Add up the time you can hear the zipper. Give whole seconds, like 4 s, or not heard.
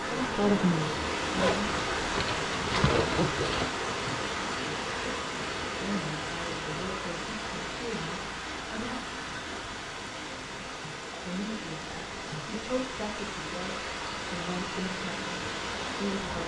2 s.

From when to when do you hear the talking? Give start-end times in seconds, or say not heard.
0.0-1.7, 5.8-8.9, 11.2-16.4.